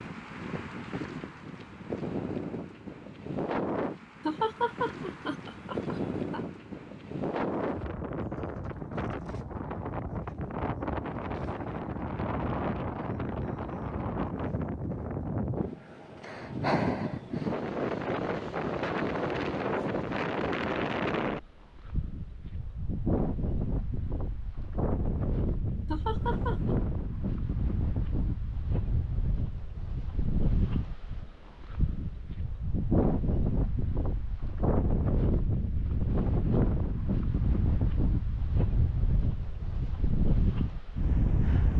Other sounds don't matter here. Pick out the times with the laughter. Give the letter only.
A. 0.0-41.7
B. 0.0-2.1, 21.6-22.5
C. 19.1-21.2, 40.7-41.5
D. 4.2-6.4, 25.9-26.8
D.